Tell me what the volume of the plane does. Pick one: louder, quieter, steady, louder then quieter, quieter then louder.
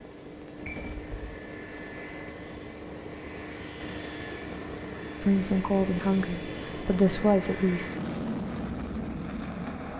louder.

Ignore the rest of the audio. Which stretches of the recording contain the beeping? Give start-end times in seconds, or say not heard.
0.7-1.4.